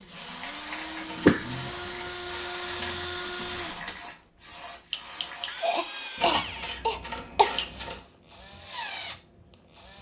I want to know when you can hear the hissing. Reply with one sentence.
The hissing can be heard from 0.1 to 5.6 s.